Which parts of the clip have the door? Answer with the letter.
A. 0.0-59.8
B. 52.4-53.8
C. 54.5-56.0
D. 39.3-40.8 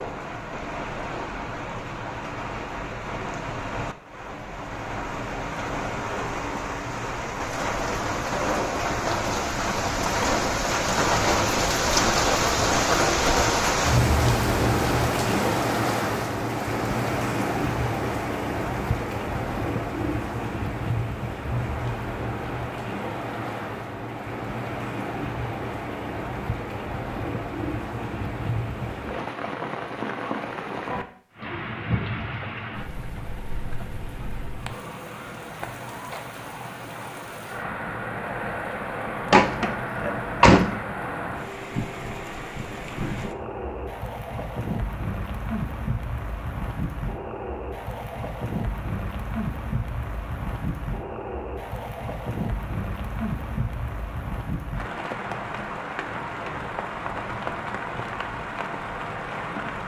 D.